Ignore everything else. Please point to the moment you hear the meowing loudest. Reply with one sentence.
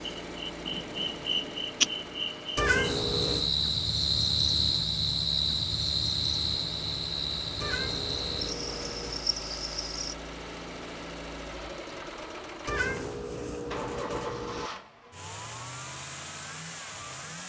The loudest moment of the meowing is at 3 seconds.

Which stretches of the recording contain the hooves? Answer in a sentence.
You can't hear the hooves here.